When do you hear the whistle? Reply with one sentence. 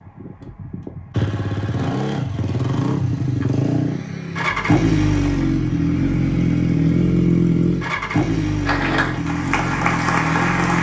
You can't hear the whistle here.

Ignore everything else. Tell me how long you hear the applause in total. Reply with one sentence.
The applause can be heard for 2 seconds in total.